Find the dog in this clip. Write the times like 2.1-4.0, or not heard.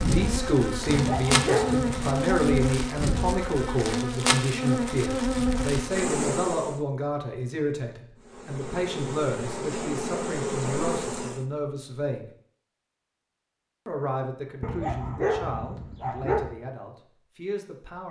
0.8-2.1, 14.6-16.6.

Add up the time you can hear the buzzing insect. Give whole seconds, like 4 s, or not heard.
10 s.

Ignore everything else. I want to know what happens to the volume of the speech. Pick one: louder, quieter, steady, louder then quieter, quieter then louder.
quieter.